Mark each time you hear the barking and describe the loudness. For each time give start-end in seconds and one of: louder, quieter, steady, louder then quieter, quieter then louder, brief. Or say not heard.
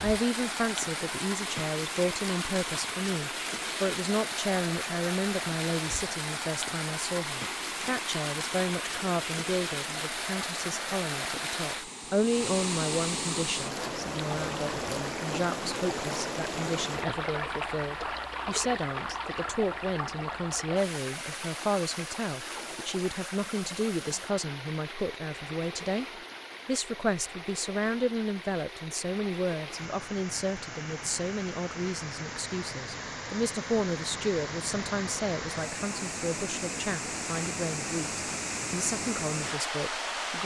not heard.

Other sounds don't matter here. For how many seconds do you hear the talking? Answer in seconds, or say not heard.
40 s.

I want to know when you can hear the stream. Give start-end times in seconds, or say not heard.
0.0-40.4.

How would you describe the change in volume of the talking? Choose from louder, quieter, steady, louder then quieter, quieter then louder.
steady.